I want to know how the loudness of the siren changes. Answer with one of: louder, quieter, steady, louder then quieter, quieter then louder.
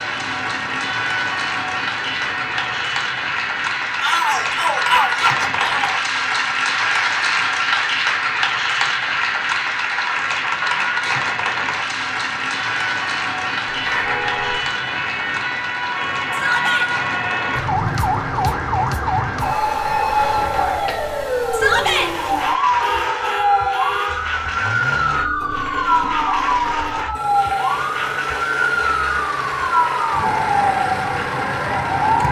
louder.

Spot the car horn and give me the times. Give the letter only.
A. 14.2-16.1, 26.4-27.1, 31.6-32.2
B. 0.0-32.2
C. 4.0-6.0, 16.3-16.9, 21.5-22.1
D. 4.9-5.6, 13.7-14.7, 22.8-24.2
D.